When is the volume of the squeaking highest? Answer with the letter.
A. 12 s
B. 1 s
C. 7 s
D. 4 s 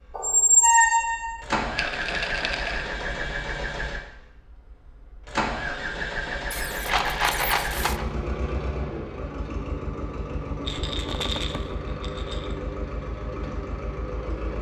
B.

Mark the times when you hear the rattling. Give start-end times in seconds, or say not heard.
1.8-2.9, 6.8-8.1, 10.7-12.6.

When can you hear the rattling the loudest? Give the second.
7 s.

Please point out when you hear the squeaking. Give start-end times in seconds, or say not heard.
0.1-1.4, 6.5-8.0, 11.1-11.7.